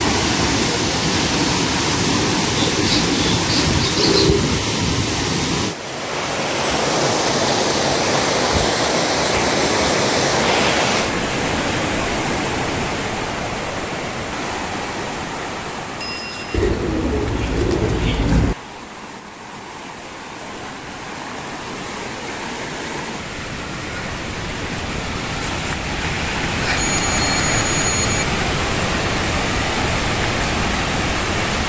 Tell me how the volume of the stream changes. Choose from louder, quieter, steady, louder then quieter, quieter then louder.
quieter then louder.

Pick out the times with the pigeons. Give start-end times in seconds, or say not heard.
2.5-4.5, 16.5-18.6.